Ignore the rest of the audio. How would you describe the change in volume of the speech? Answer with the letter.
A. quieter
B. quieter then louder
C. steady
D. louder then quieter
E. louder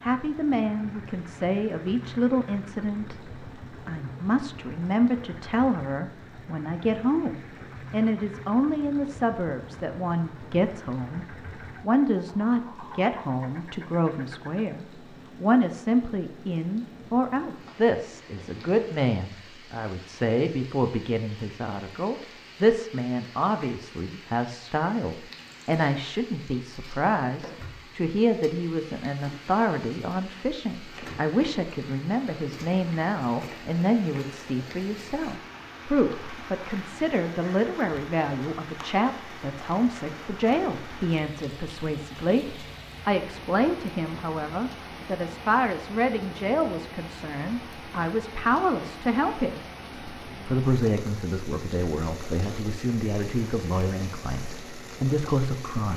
C.